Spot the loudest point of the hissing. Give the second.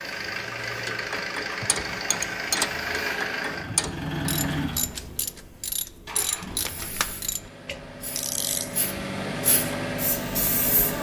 10 s.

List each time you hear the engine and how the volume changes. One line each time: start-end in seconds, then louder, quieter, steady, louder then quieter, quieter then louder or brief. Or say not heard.
0.0-10.9 quieter then louder.